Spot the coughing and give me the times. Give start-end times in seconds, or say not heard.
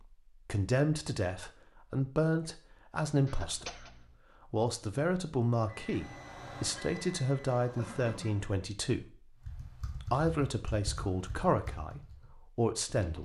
3.2-4.2, 7.8-8.4.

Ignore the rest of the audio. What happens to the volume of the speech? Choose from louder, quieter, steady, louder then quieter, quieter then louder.
steady.